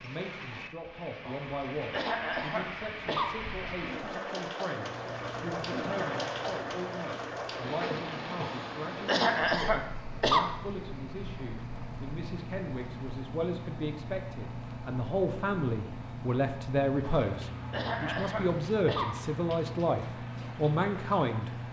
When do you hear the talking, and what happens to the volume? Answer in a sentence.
The talking can be heard from 0.0 to 21.5 s, getting louder.